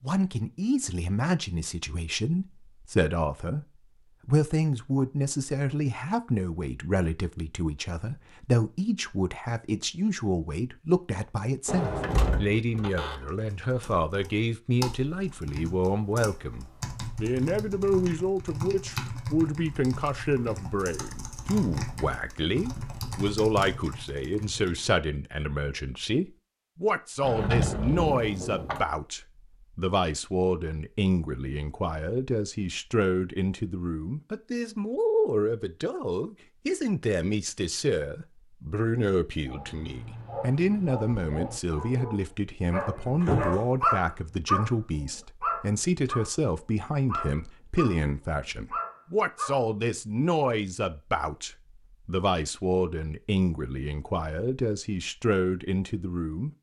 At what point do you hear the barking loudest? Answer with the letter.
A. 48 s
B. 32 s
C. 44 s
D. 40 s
C.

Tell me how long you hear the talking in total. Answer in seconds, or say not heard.
56 s.